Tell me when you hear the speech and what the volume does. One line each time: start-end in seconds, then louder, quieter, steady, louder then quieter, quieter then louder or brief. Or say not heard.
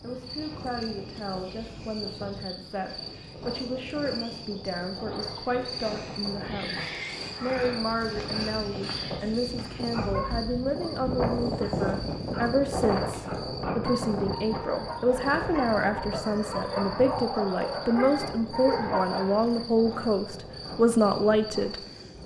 0.0-22.2 louder.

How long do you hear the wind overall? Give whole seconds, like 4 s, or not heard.
22 s.